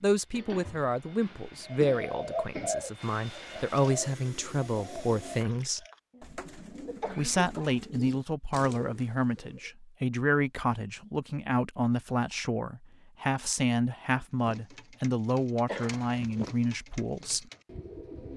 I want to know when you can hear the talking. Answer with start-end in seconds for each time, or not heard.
0.0-5.8, 7.2-17.4.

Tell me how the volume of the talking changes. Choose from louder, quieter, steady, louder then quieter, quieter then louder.
steady.